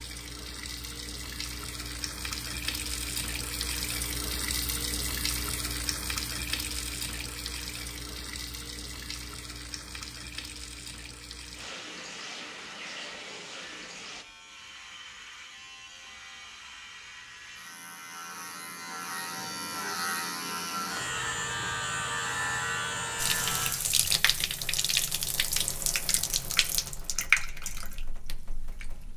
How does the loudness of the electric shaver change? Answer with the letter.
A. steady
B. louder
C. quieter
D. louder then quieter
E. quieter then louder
B.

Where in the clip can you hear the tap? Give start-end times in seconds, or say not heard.
0.0-14.2, 23.1-29.1.